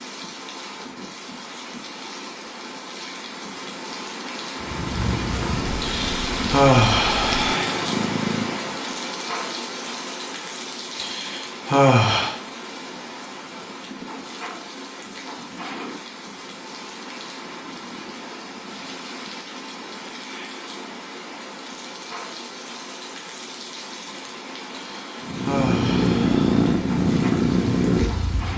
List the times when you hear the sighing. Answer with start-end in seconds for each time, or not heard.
5.8-7.8, 10.9-12.3, 24.7-26.6.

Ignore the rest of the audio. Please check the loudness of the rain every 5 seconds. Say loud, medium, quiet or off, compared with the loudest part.
medium, loud, medium, medium, medium, medium.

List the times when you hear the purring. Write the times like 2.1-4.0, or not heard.
4.6-8.8, 25.2-28.5.